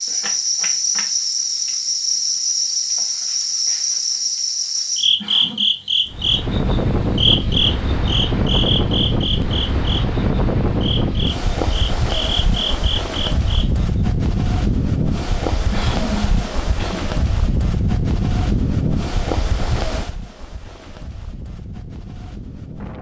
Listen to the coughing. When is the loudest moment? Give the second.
16 s.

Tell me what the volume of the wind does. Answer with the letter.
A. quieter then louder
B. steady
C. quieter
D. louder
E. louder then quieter
C.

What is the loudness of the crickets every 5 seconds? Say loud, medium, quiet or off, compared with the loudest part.
loud, loud, medium, off, off.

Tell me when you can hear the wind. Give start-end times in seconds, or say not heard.
6.0-22.9.